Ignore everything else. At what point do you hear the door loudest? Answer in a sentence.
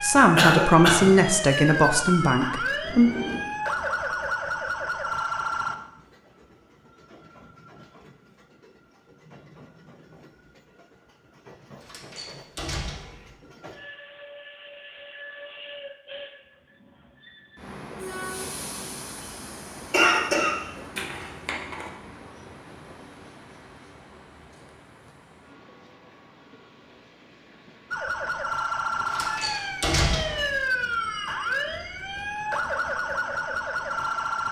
The loudest moment of the door is at 30 seconds.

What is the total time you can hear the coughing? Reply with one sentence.
The coughing can be heard for 3 seconds in total.